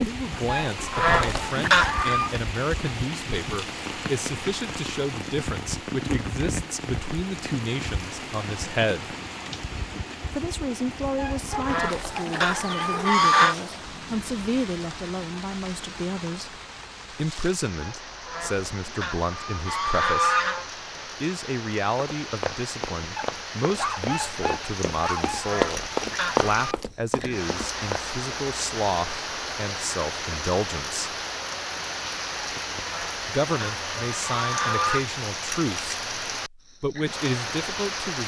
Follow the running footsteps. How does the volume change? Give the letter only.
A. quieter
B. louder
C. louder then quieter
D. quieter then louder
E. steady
C.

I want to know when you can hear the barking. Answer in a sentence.
The barking can be heard from 11.5 to 13.2 s and from 23.1 to 25.4 s.